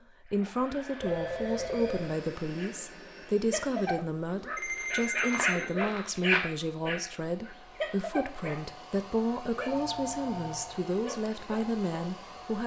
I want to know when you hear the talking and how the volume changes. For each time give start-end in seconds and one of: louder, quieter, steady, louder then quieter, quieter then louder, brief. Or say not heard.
0.2-12.6 steady.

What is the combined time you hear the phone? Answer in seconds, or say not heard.
3 s.